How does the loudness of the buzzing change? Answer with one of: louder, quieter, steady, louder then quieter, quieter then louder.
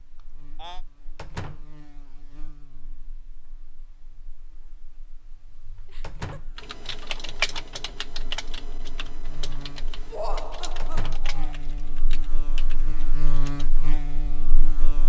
quieter then louder.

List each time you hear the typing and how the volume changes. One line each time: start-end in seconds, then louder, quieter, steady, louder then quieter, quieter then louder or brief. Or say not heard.
6.5-13.7 quieter.